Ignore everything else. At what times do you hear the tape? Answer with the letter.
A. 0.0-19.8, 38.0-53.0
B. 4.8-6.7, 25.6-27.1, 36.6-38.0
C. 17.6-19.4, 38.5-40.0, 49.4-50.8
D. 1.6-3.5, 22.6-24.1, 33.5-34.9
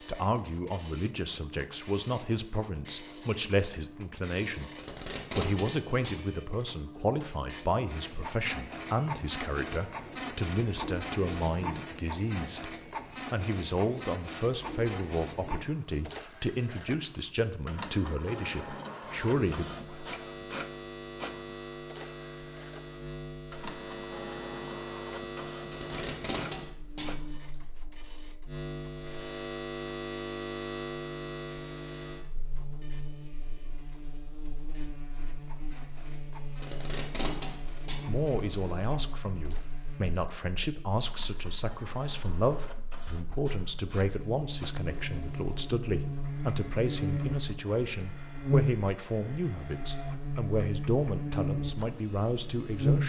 B.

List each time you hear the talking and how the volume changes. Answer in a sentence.
The talking can be heard from 0.0 to 19.8 s, at a steady volume; and from 38.0 to 53.0 s, at a steady volume.